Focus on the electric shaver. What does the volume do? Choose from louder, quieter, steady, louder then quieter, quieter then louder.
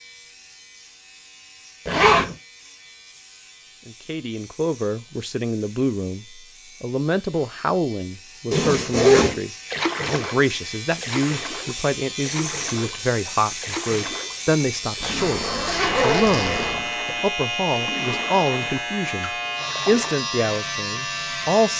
louder.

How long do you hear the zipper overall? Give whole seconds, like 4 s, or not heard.
3 s.